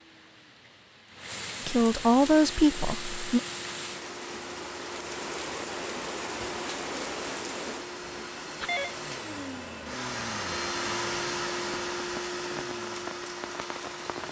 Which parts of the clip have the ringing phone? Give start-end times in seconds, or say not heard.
8.0-8.9.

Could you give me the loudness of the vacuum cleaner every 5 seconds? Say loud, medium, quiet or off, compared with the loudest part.
medium, medium, loud.